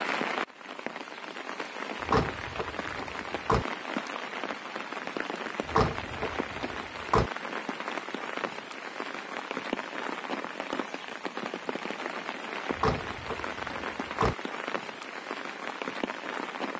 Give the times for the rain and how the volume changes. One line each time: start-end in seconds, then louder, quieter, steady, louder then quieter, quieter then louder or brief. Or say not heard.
0.0-16.7 steady.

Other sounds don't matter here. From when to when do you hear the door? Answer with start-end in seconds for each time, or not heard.
2.0-3.6, 5.7-7.3, 12.8-14.3.